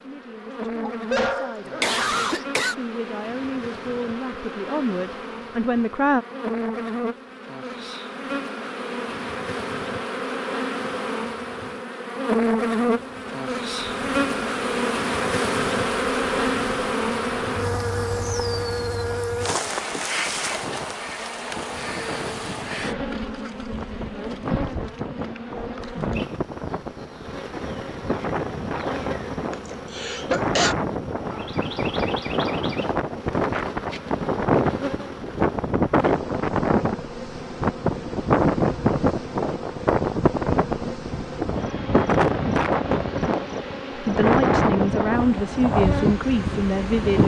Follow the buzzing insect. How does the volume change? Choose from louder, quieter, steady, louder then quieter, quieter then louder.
louder then quieter.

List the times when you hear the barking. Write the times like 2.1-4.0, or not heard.
1.1-2.2.